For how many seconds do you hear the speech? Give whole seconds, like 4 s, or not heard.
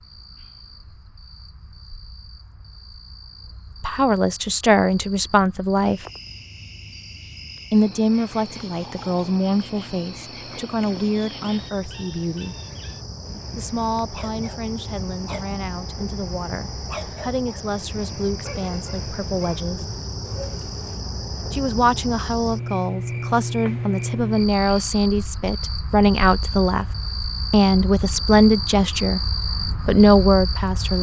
22 s.